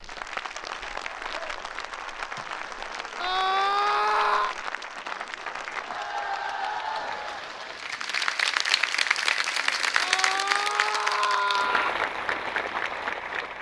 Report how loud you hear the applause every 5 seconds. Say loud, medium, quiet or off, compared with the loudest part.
medium, loud, loud.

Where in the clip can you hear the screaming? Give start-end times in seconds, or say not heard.
3.1-4.5, 9.9-11.9.